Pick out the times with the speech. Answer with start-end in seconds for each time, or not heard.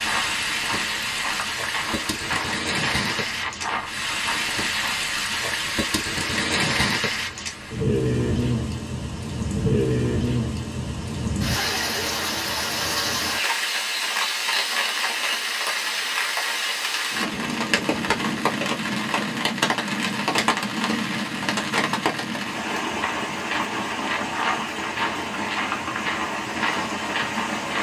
not heard.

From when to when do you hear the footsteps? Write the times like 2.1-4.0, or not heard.
0.0-5.0, 23.0-27.7.